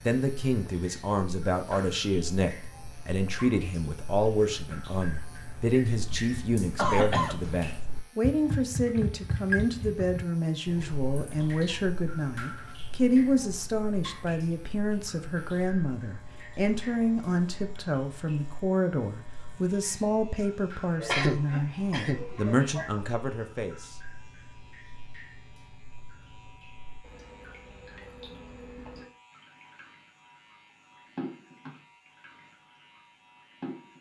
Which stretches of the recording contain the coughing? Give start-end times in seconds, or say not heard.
6.0-7.7, 21.0-23.0.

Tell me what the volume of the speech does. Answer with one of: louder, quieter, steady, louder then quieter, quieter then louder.
steady.